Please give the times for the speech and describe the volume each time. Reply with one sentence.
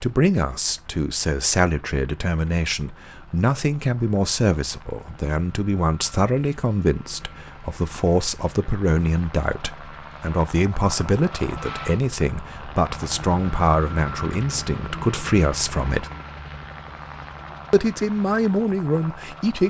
You can hear the speech from 0.0 to 16.1 s, at a steady volume; and briefly from 17.7 to 19.6 s.